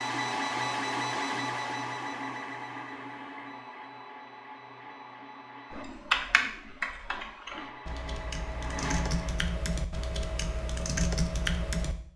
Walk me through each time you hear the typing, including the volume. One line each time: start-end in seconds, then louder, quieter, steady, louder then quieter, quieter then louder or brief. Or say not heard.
5.7-11.9 quieter then louder.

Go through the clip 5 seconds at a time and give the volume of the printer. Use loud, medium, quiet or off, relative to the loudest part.
loud, medium, off.